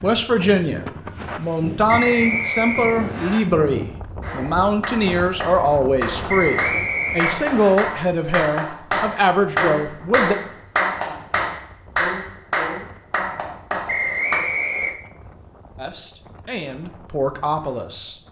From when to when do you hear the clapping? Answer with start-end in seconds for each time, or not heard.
4.2-14.4.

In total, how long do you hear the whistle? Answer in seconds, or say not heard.
4 s.